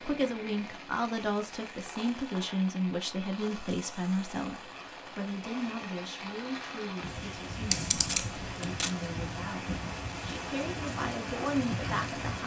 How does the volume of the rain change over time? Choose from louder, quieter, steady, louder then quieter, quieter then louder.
louder.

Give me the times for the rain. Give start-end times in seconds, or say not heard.
0.0-12.4.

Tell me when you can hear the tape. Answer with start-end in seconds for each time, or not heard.
8.0-8.9.